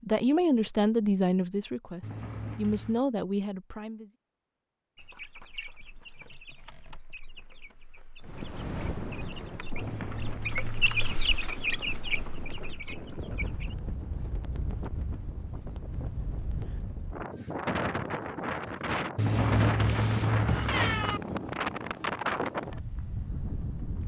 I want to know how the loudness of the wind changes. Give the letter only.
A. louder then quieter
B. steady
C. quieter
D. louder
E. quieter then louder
D.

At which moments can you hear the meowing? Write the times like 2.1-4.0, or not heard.
2.0-3.0, 9.8-11.2, 19.1-21.2.